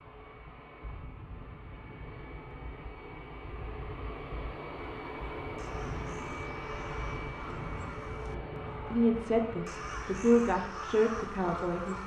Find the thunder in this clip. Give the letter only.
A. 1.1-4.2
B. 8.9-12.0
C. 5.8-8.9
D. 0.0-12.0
C.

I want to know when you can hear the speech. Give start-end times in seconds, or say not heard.
8.9-12.0.